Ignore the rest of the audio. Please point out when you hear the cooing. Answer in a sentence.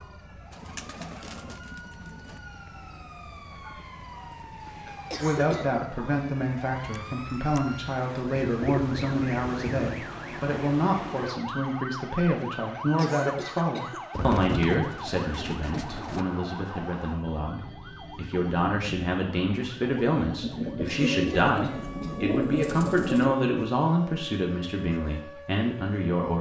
The cooing can be heard from 0.5 to 2.4 s, from 8.3 to 10.1 s, from 14.2 to 16.2 s and from 20.4 to 23.4 s.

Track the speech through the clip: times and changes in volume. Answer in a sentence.
The speech can be heard from 5.2 to 26.3 s, at a steady volume.